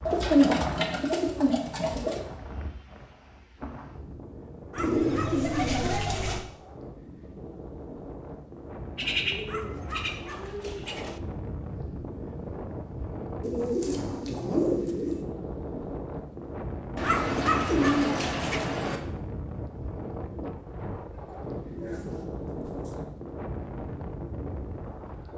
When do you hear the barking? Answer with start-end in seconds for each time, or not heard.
4.7-6.5, 9.4-11.2, 17.0-18.7.